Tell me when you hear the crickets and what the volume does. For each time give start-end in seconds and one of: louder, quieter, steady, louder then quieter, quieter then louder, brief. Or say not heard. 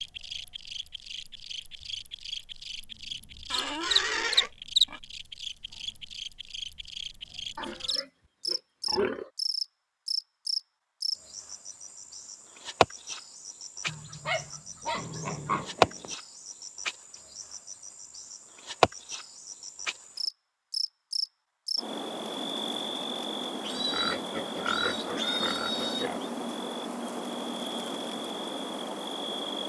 0.0-29.6 steady.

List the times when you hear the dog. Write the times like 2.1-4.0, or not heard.
13.8-15.7.